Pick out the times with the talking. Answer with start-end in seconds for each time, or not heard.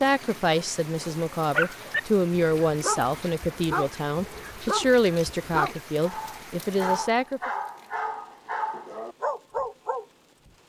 0.0-7.5.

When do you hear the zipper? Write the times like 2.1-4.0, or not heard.
not heard.